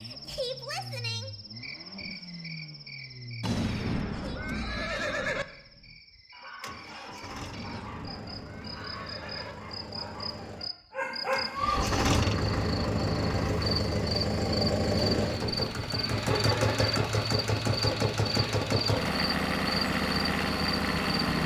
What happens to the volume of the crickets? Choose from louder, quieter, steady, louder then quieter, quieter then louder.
quieter then louder.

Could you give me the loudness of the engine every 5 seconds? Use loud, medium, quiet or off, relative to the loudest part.
quiet, quiet, loud, loud, loud.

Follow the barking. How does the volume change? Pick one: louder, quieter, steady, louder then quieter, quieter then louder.
louder.